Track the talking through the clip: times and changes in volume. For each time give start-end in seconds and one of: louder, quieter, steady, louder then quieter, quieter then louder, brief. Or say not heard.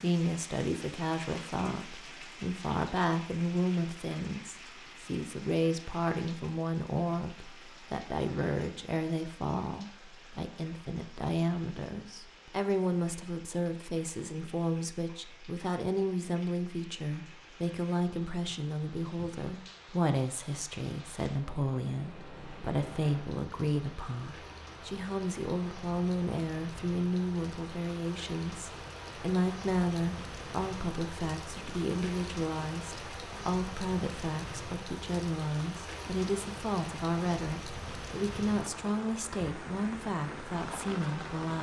0.0-41.5 steady.